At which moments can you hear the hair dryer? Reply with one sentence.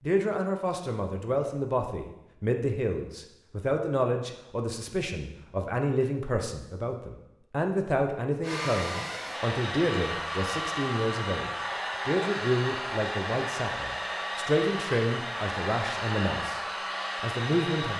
You can hear the hair dryer from 8.4 to 17.9 s.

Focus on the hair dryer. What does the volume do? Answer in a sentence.
The loudness of the hair dryer stays about the same.